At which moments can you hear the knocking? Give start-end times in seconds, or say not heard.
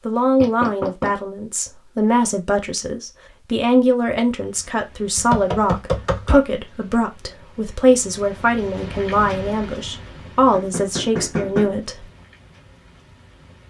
0.4-1.1, 5.2-6.4, 10.5-11.8.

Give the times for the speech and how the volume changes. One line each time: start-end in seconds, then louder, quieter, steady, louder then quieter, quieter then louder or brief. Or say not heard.
0.1-12.1 steady.